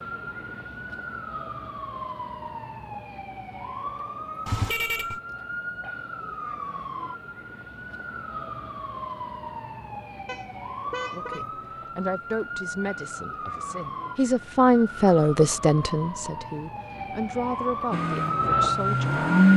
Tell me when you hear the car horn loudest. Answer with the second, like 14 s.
5 s.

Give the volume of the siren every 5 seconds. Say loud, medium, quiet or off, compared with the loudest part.
medium, medium, medium, loud.